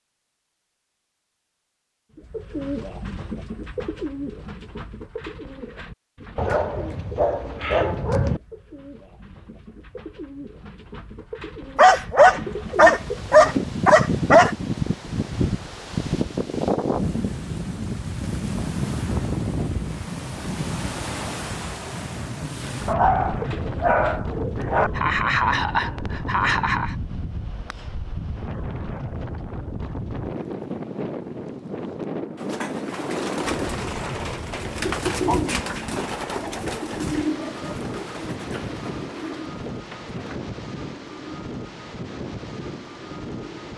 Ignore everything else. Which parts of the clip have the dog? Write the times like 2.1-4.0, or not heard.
6.3-8.4, 11.8-14.6, 22.9-24.9, 35.1-35.9.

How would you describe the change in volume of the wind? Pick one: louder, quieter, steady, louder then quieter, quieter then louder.
quieter.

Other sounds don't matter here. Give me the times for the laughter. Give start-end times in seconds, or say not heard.
24.6-26.9.